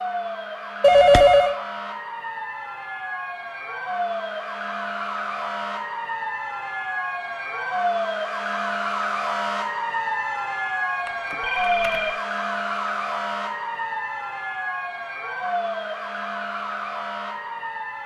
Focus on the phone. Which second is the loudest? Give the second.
1 s.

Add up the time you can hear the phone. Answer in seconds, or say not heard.
2 s.